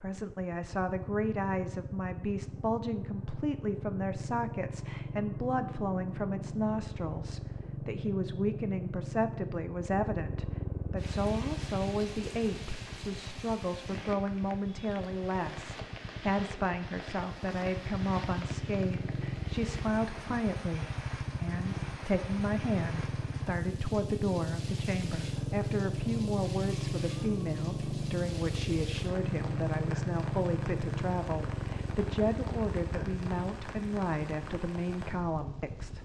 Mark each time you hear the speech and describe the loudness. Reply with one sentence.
The speech can be heard from 0.0 to 36.0 s, at a steady volume.